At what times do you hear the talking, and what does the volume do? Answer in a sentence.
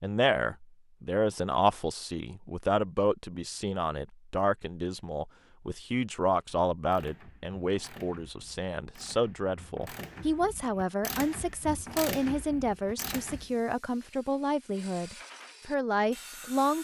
The talking can be heard from 0.0 to 16.7 s, at a steady volume.